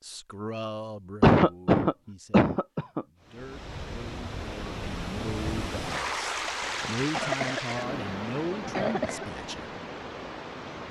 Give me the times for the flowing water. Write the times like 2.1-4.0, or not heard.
3.2-10.8.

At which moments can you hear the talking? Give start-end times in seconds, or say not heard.
0.0-9.7.